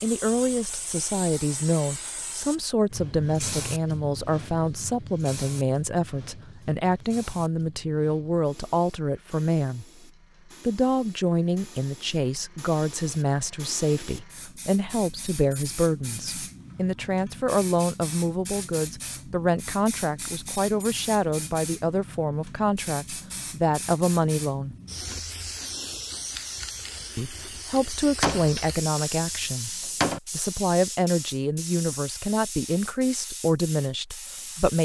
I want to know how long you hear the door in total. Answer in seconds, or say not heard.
2 s.